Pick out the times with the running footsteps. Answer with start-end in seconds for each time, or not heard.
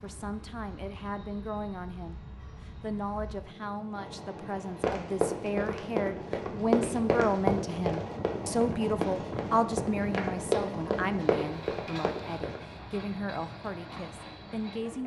4.8-12.6.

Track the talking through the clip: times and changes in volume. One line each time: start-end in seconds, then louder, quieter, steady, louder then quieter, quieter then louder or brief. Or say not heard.
0.0-15.0 louder then quieter.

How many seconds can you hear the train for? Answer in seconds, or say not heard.
15 s.